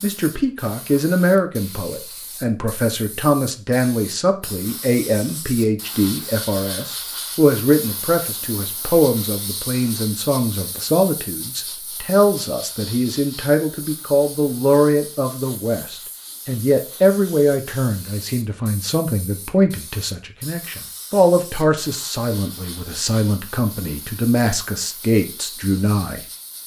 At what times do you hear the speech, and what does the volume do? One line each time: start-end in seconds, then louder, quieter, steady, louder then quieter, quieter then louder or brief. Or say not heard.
0.0-26.2 steady.